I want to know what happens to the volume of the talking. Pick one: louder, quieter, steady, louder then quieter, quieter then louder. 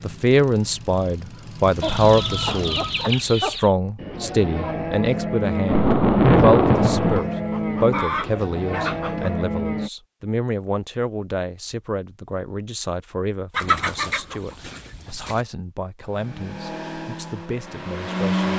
quieter.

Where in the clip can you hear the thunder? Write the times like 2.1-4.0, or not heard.
5.7-7.2.